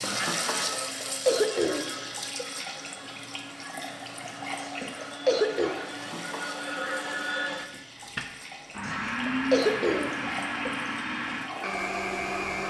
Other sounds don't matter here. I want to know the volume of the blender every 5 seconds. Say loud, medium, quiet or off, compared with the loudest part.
medium, loud, loud.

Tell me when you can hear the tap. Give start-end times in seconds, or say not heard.
0.0-12.6.